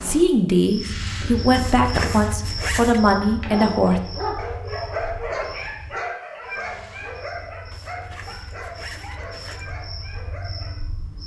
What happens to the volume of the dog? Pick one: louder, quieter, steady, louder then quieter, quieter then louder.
quieter.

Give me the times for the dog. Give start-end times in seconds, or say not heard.
3.2-10.8.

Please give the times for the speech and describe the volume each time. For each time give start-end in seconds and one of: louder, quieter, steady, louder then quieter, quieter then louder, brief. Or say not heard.
0.0-4.0 steady.